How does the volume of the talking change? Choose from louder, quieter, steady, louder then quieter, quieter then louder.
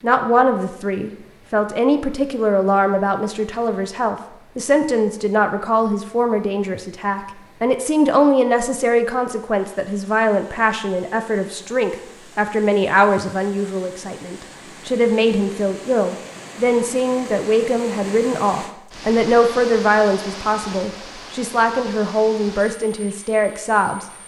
steady.